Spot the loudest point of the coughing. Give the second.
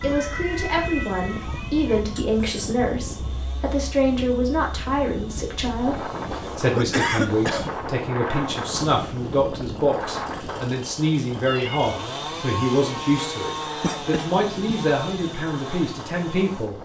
7 s.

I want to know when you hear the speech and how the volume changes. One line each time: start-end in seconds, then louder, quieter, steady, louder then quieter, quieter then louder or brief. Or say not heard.
0.0-16.7 steady.